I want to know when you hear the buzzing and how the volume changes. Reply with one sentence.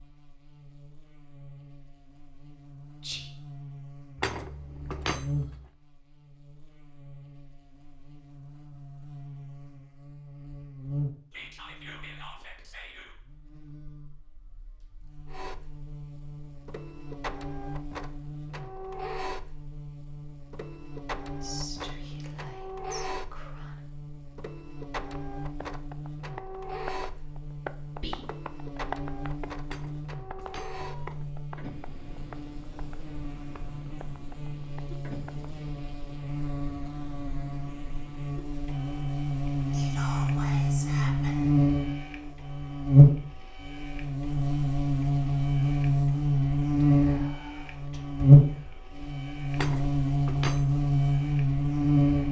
You can hear the buzzing from 0.0 to 52.2 s, getting louder.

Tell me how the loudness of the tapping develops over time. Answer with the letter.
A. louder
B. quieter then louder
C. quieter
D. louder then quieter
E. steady
C.